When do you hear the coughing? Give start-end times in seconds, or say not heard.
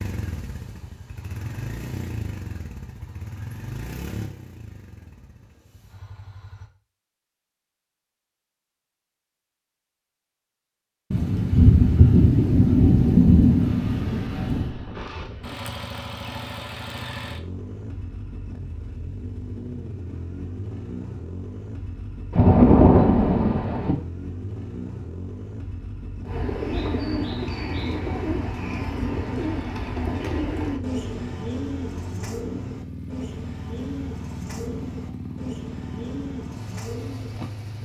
not heard.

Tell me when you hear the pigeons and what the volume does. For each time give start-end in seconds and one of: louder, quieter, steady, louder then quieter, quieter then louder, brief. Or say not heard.
26.2-37.4 quieter.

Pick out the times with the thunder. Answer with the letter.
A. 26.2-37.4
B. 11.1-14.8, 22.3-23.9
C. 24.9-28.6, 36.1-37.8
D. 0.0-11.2
B.